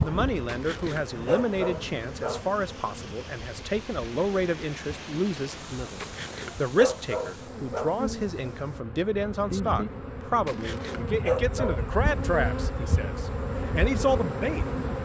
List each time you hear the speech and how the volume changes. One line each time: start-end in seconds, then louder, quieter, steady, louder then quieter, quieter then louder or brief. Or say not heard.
0.0-15.0 steady.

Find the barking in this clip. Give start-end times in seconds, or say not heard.
0.5-2.5, 6.0-8.0, 10.4-11.8.